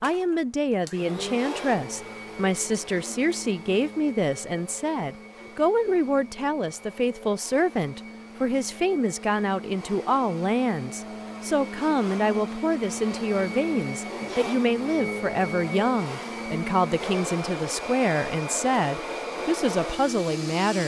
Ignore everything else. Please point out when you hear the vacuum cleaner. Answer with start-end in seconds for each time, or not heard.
0.0-20.8.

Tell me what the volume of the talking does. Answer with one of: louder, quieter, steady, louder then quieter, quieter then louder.
steady.